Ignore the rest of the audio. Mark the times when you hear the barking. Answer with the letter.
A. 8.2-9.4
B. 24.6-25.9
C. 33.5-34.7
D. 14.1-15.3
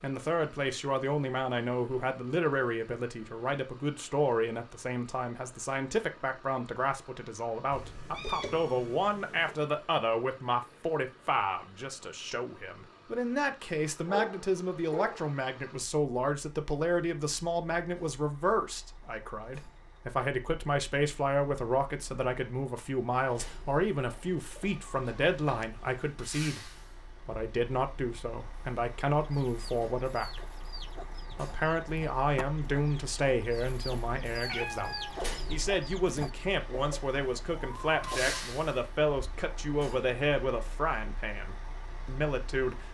D.